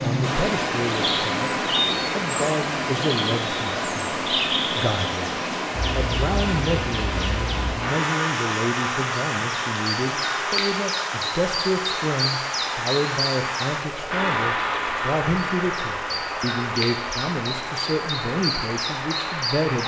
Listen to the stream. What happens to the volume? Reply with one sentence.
The loudness of the stream goes down.